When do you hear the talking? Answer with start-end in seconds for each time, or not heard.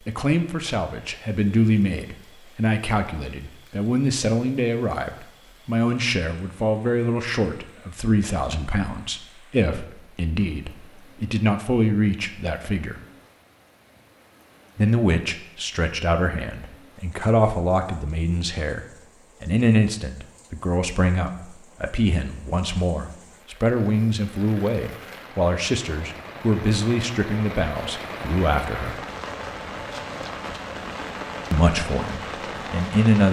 0.0-13.0, 14.8-18.8, 19.4-29.1, 31.5-33.2.